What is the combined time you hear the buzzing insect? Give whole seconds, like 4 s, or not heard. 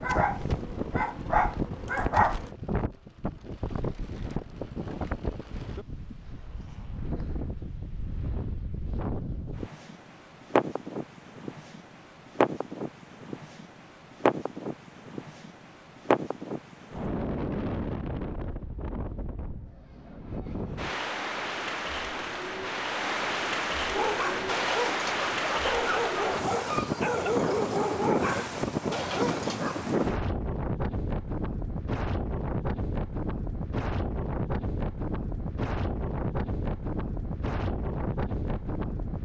not heard.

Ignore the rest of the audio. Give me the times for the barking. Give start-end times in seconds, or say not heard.
0.0-2.5, 23.9-29.8.